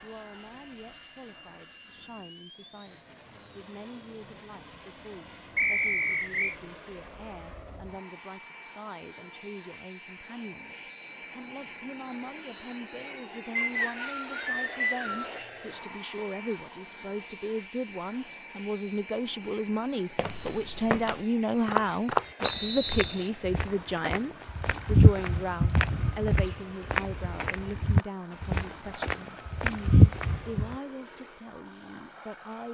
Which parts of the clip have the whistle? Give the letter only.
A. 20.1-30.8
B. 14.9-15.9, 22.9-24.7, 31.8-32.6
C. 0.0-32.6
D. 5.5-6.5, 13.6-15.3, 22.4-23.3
D.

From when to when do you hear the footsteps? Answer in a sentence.
The footsteps can be heard from 20.1 to 30.8 s.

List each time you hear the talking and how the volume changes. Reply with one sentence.
You can hear the talking from 0.0 to 32.6 s, getting louder then quieter.